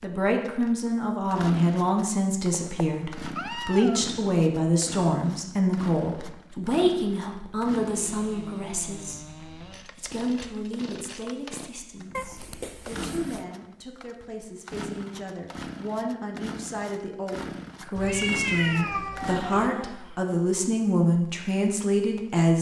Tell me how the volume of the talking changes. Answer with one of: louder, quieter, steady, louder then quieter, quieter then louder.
quieter then louder.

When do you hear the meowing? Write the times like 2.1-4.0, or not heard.
2.5-4.1, 12.1-13.4, 17.9-19.7.